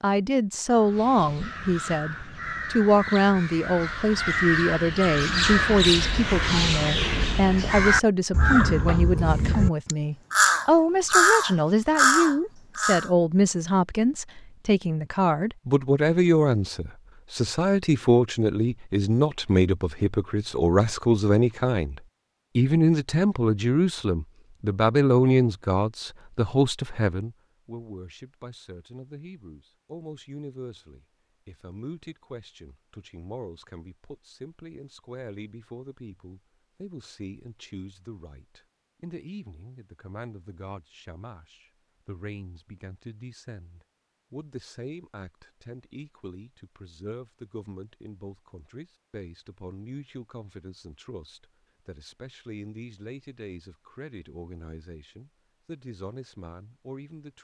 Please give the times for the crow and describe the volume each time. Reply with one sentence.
You can hear the crow from 0.7 to 13.1 s, getting louder.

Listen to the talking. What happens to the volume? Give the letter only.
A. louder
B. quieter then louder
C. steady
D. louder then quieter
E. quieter
E.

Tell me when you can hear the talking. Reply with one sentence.
You can hear the talking from 0.0 to 57.3 s.